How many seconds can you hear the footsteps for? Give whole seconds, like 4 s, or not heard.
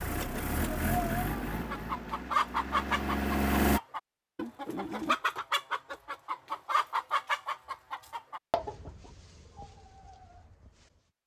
not heard.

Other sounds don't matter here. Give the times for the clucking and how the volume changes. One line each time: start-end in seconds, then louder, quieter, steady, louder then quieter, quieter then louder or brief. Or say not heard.
1.5-11.0 quieter.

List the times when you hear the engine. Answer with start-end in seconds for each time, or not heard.
0.0-3.8.